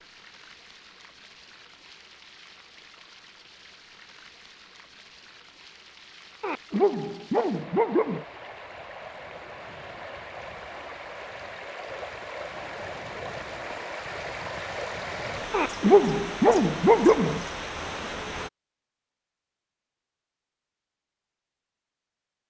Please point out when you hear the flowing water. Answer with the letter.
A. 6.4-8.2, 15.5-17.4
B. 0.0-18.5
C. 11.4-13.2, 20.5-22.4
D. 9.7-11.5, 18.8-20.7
B.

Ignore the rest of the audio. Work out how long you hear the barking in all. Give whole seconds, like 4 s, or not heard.
4 s.